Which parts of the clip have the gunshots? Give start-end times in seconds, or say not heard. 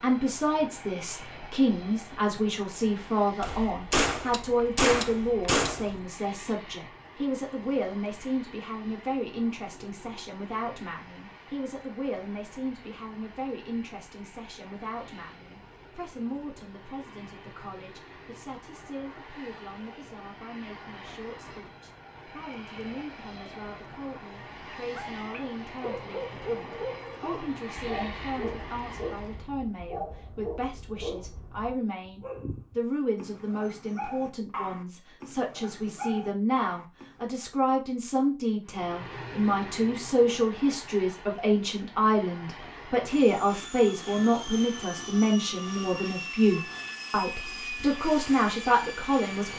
3.4-6.0.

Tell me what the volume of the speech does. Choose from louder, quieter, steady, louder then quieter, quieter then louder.
quieter then louder.